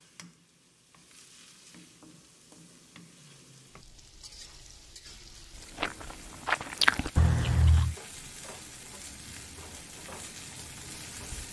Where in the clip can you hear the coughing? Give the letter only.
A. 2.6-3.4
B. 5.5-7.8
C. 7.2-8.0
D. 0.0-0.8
C.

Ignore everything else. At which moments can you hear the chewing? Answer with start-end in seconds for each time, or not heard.
5.5-7.8.